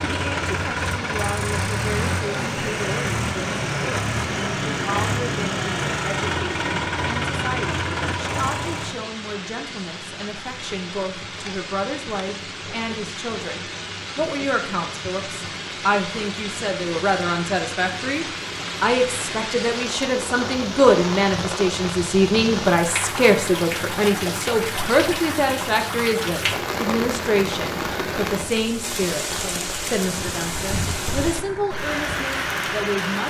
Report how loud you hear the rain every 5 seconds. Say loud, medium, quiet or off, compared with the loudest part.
medium, medium, medium, loud, loud, loud, loud.